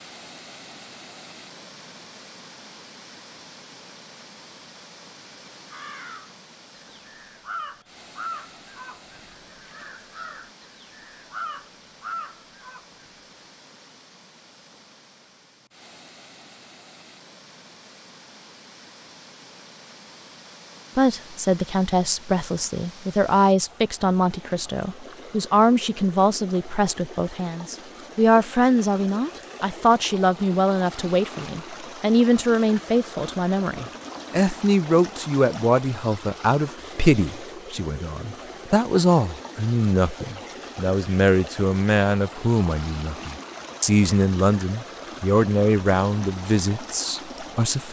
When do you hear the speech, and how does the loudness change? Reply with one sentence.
The speech can be heard from 20.9 to 47.8 s, at a steady volume.